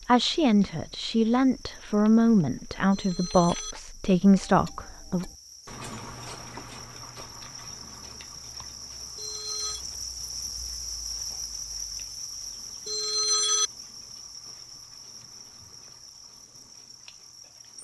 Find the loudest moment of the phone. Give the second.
13 s.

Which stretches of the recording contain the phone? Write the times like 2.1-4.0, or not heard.
2.9-3.8, 9.2-9.8, 12.8-13.7.